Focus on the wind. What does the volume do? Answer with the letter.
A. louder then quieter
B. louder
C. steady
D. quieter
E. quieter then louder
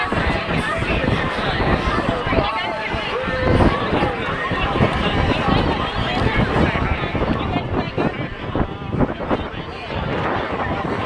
C.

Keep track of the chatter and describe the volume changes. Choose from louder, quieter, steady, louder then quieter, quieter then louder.
quieter.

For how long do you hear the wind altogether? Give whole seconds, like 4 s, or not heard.
11 s.